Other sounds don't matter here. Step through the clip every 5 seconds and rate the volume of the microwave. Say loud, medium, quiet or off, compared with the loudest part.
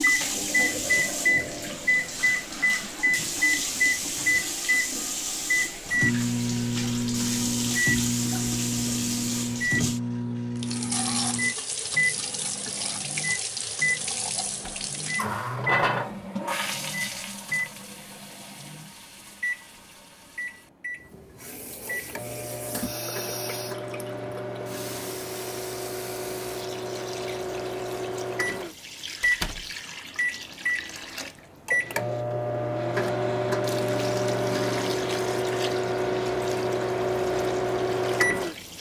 loud, loud, medium, medium, medium, medium, loud, loud.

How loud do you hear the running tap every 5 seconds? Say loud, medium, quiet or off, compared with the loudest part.
loud, loud, loud, loud, medium, medium, medium, medium.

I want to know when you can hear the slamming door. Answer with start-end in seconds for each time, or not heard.
14.4-14.9, 29.2-29.7.